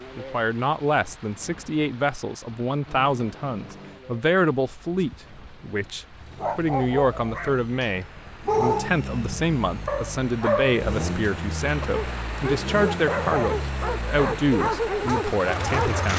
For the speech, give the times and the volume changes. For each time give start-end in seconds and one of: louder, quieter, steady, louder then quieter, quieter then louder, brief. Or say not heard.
0.1-16.1 steady.